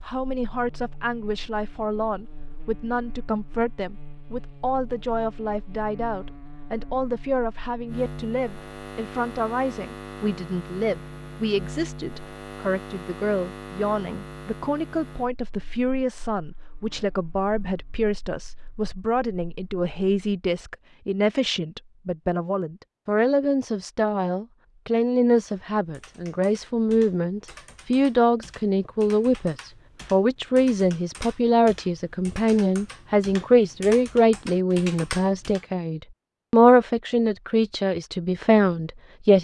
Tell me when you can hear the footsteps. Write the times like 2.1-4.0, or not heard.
not heard.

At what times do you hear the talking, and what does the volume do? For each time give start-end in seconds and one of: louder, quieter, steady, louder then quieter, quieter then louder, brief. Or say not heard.
0.1-39.4 louder.